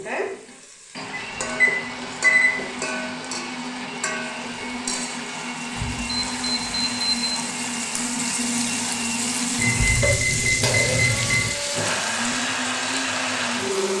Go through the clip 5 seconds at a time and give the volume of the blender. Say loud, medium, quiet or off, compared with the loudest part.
medium, loud, loud.